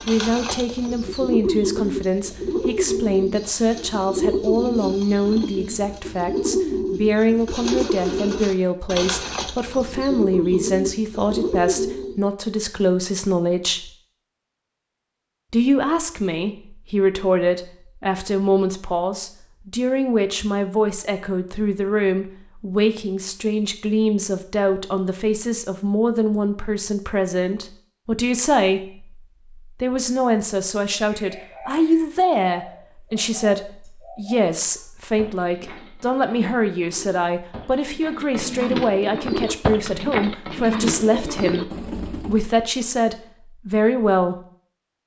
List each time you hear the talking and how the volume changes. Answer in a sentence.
The talking can be heard from 0.1 to 13.9 s, at a steady volume; from 15.5 to 29.2 s, at a steady volume; and from 29.8 to 44.4 s, at a steady volume.